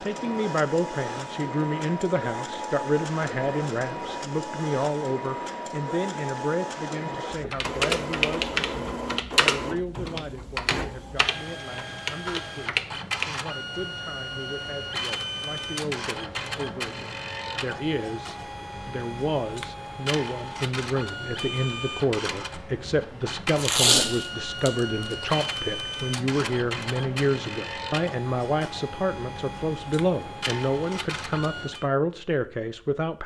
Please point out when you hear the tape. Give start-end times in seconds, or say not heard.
23.6-25.4.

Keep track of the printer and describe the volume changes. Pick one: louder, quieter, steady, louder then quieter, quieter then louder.
steady.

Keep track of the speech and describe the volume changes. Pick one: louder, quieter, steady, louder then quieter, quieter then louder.
quieter then louder.